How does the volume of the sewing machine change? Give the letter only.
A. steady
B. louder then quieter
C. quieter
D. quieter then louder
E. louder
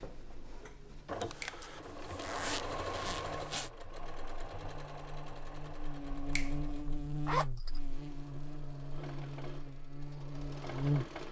D.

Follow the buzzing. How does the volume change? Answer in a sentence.
The volume of the buzzing goes up.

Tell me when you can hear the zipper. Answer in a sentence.
You can hear the zipper from 1.2 to 3.7 s and from 7.2 to 7.8 s.